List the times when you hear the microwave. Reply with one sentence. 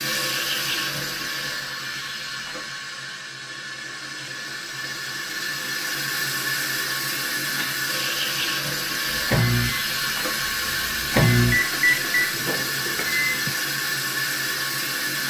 The microwave can be heard from 9.1 to 13.5 s.